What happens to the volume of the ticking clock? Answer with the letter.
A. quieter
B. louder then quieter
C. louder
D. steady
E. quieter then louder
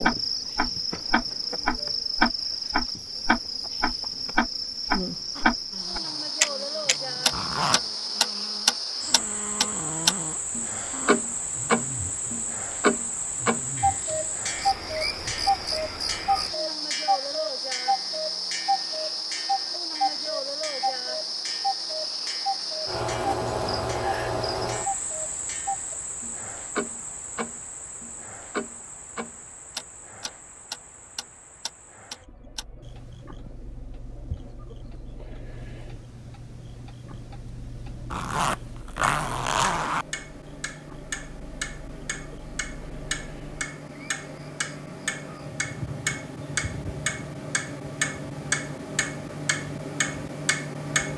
E.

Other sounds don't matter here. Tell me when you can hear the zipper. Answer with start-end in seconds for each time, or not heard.
7.3-7.8, 38.1-40.0.